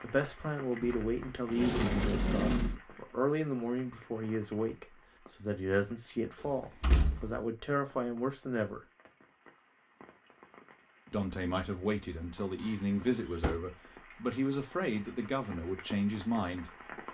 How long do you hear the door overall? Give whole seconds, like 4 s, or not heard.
4 s.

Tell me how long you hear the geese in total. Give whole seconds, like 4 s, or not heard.
not heard.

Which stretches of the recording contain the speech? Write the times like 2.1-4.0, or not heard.
0.0-8.8, 11.1-16.7.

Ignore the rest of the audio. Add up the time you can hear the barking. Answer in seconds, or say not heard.
not heard.